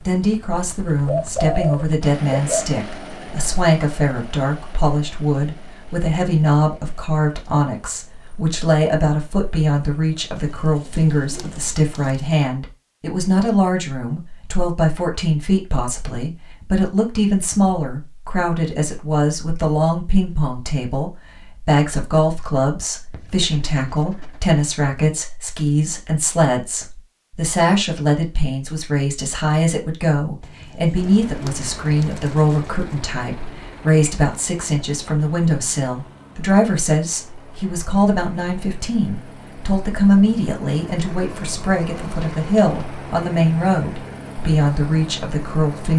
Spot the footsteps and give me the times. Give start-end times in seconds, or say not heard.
not heard.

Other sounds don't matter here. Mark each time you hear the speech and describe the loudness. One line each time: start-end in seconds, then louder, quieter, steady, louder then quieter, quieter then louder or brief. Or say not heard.
0.1-45.9 steady.